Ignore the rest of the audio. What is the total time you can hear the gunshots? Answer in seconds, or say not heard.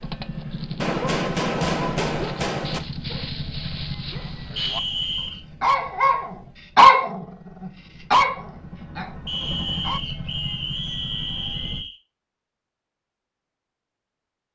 2 s.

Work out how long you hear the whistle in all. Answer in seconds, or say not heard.
4 s.